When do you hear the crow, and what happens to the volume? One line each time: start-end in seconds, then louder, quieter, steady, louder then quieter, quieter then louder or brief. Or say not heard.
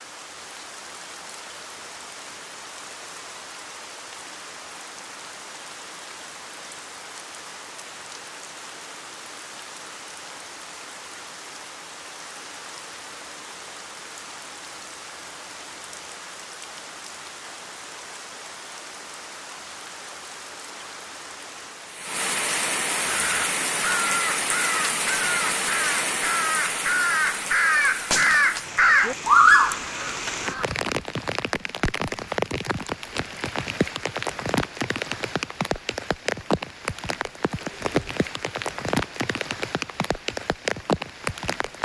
23.1-30.6 louder.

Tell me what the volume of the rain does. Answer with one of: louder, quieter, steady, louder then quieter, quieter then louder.
louder.